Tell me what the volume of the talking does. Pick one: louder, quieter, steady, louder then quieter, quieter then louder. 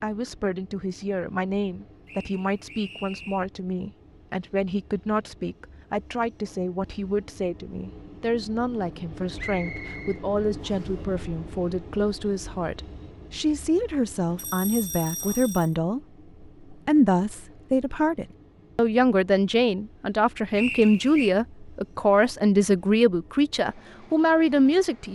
louder.